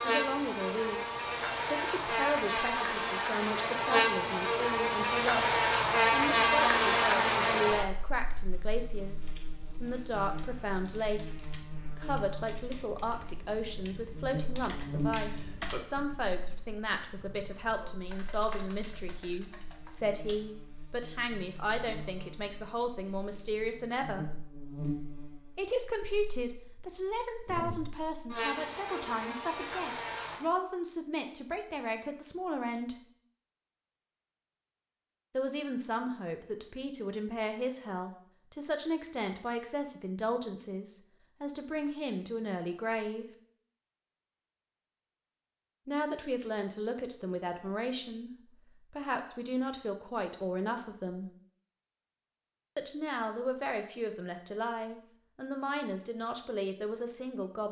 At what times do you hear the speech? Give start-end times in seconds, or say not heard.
0.0-24.2, 25.6-33.0, 35.3-43.2, 45.9-51.3, 52.8-57.6.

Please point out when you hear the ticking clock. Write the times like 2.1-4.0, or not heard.
not heard.